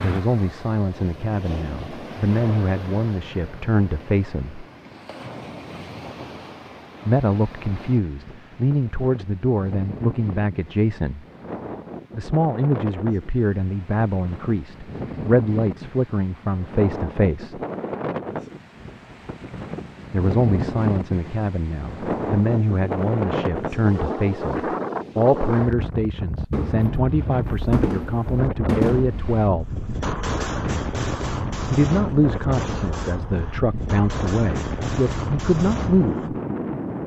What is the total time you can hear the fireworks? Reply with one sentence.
You can hear the fireworks for 10 seconds altogether.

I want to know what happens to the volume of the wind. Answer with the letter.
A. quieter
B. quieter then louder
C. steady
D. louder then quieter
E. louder
E.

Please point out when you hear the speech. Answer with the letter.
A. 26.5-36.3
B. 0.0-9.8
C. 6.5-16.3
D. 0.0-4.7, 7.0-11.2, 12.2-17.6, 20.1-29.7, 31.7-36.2
D.